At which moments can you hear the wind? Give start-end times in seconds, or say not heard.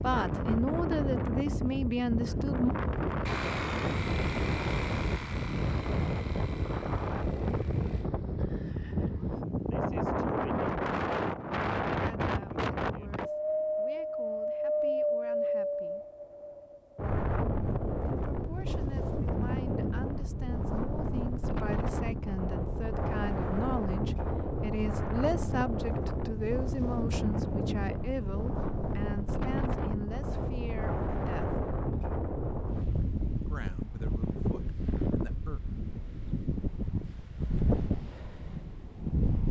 0.0-39.4.